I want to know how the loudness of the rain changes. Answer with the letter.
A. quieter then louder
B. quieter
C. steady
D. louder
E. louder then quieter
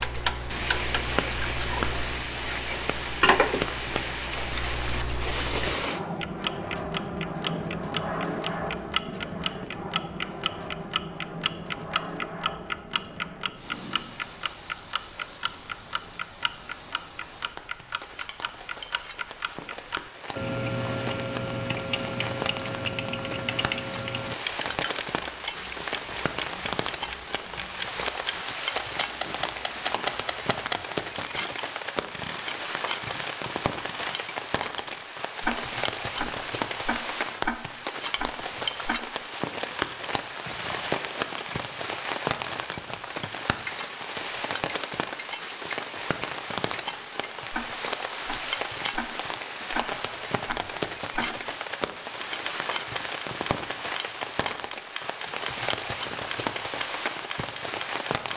A.